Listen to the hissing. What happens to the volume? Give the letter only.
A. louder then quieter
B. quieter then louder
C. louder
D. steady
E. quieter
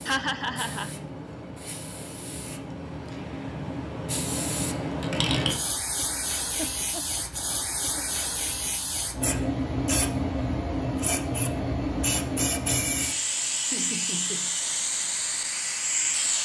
C.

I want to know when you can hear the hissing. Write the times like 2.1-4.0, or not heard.
0.0-16.4.